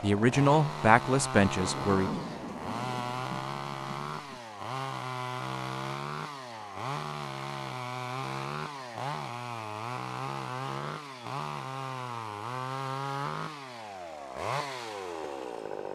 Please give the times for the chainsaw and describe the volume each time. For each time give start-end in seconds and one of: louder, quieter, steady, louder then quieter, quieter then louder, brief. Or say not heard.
0.0-15.8 steady.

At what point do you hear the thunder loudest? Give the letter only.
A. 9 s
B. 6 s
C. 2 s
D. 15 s
C.